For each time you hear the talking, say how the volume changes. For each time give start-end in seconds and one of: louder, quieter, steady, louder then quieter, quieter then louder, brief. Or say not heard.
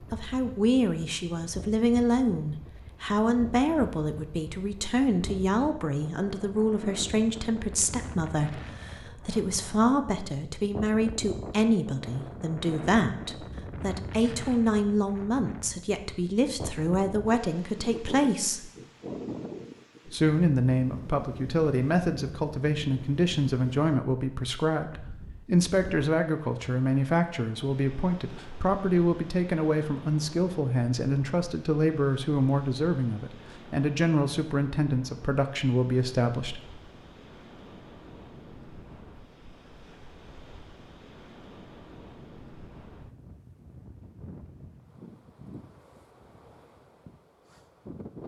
0.1-18.7 steady
20.1-36.6 steady.